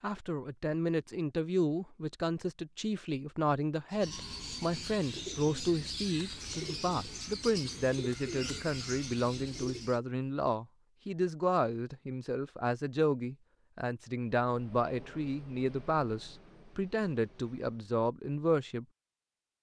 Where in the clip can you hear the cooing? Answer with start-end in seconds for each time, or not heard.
3.9-10.0.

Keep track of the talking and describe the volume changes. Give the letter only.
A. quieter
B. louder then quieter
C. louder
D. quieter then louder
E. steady
E.